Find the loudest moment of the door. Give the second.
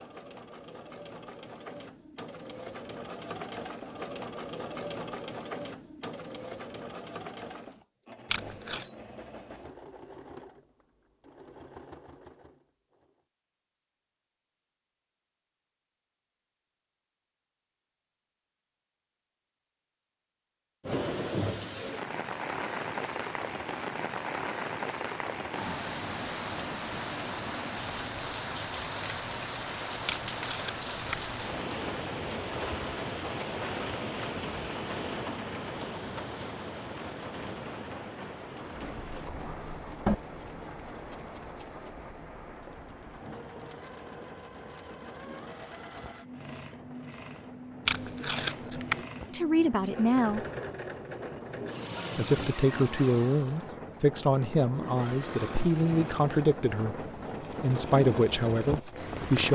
40 s.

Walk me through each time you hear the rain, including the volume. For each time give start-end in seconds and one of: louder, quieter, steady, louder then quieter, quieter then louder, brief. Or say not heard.
20.8-59.5 quieter then louder.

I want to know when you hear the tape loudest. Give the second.
49 s.